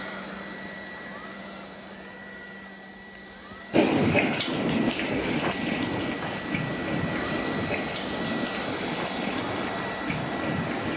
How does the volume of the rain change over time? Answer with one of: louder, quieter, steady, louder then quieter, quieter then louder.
quieter.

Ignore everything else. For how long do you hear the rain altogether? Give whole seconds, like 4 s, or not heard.
7 s.